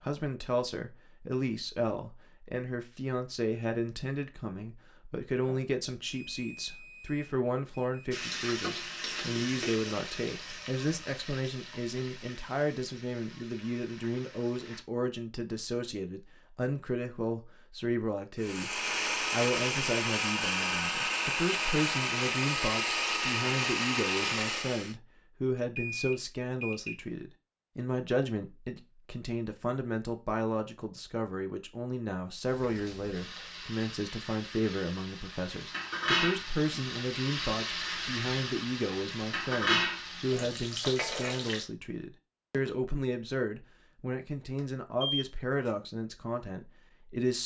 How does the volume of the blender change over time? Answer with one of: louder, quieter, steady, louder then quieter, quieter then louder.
steady.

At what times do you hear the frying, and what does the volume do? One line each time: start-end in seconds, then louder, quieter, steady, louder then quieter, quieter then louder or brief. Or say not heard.
8.1-14.8 quieter
32.5-41.6 louder.